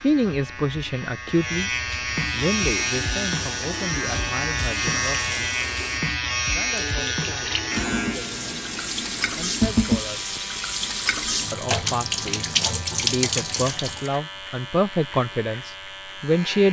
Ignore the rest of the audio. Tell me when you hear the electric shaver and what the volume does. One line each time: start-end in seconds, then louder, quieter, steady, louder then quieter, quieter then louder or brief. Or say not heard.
0.0-16.6 quieter.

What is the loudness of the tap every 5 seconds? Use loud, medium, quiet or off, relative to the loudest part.
medium, loud, loud, off.